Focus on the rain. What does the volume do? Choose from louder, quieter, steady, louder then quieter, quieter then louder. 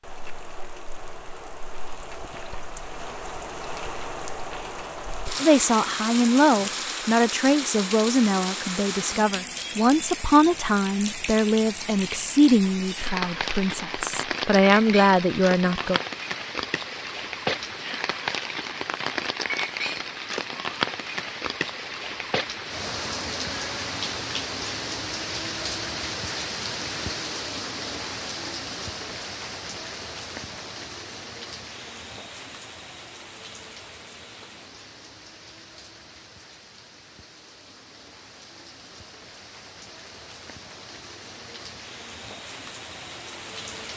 quieter.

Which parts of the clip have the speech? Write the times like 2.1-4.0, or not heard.
5.4-16.0.